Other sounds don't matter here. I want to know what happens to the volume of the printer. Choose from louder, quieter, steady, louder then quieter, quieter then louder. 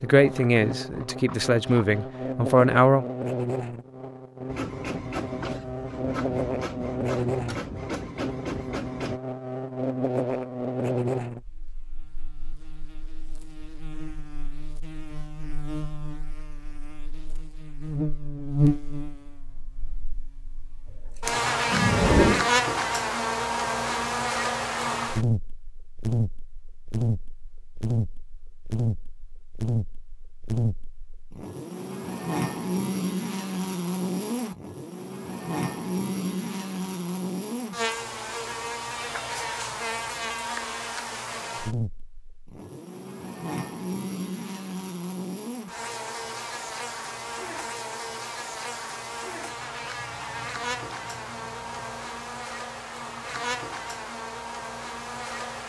steady.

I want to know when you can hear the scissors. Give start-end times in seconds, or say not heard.
0.2-2.2, 21.2-22.5, 50.0-52.0.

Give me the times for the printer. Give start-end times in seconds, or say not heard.
4.5-9.2.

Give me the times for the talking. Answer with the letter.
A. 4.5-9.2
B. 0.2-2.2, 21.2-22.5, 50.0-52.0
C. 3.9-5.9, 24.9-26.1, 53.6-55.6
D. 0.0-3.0
D.